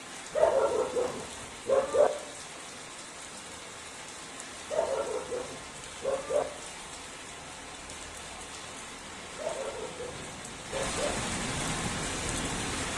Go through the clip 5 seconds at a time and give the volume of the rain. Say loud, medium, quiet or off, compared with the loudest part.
medium, medium, loud.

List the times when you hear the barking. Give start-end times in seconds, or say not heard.
0.3-2.1, 4.7-6.5, 9.3-11.2.